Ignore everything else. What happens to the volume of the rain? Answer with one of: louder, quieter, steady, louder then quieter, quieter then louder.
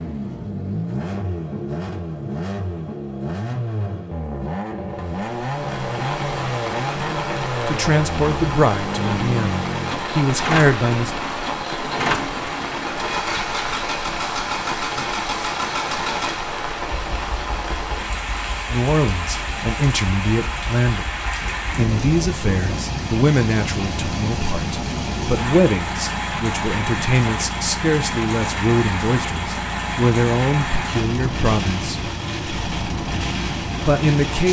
steady.